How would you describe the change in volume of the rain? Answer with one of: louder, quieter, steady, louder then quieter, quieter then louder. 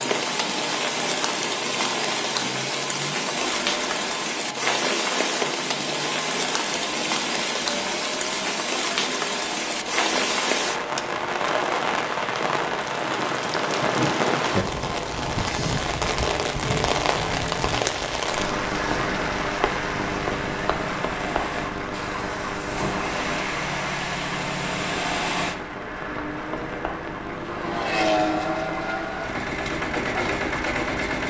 quieter.